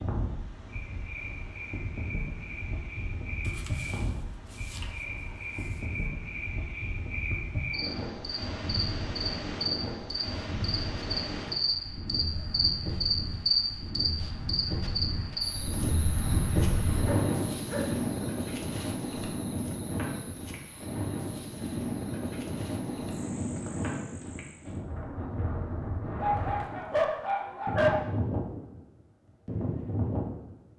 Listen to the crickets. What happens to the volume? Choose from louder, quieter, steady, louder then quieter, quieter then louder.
louder then quieter.